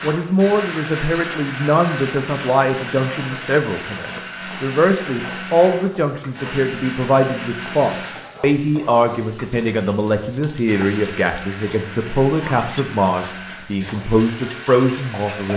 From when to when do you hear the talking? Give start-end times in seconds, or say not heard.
0.0-15.5.